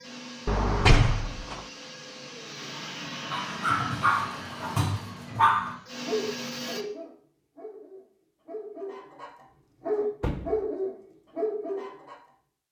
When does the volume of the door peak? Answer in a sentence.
The loudest moment of the door is at 1 second.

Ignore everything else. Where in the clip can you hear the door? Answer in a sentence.
The door can be heard from 0.5 to 1.6 s and from 10.2 to 10.6 s.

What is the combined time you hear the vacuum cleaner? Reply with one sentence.
You can hear the vacuum cleaner for 7 seconds altogether.